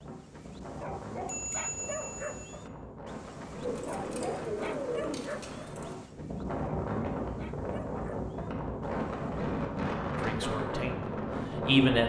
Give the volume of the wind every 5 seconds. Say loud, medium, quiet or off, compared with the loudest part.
medium, loud, loud.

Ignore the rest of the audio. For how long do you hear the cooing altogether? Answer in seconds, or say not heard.
2 s.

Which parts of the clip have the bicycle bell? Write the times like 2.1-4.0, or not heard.
1.2-2.5.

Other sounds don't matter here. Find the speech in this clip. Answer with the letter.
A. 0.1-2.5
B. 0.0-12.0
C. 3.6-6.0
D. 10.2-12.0
D.